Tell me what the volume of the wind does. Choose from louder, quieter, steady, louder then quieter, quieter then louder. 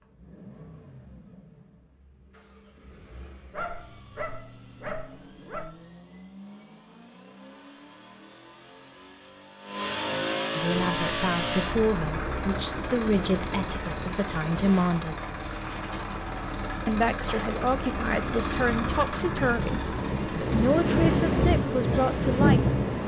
louder.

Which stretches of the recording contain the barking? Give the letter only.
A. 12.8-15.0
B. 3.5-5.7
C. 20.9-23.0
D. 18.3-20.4
B.